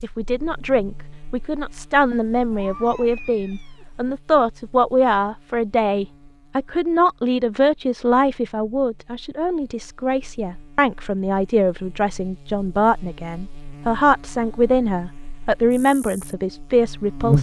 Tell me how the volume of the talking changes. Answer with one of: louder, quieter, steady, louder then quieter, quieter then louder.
steady.